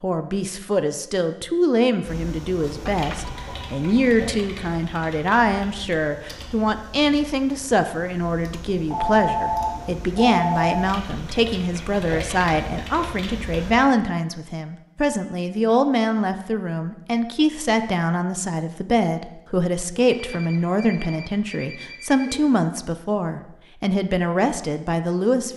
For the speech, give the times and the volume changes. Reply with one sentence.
The speech can be heard from 0.0 to 25.5 s, at a steady volume.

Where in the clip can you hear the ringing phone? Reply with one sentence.
You can hear the ringing phone from 2.9 to 4.0 s, from 8.9 to 10.9 s and from 19.9 to 22.4 s.